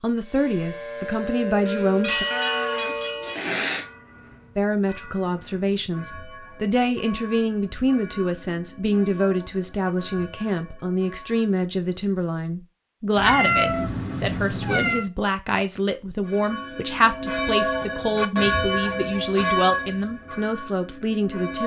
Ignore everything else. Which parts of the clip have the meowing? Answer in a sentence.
You can hear the meowing from 2.3 to 3.9 s and from 13.2 to 15.1 s.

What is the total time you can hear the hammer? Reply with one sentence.
You can't hear the hammer here.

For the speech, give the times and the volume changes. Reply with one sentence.
You can hear the speech briefly from 0.0 to 2.2 s; and from 4.5 to 21.6 s, at a steady volume.